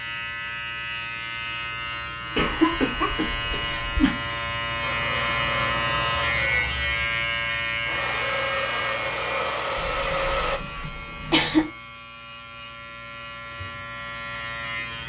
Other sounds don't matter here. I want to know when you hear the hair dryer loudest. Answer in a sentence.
The volume of the hair dryer peaks at 10 seconds.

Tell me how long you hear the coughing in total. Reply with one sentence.
The coughing can be heard for 4 seconds in total.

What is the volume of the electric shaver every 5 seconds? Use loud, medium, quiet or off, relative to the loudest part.
loud, loud, medium.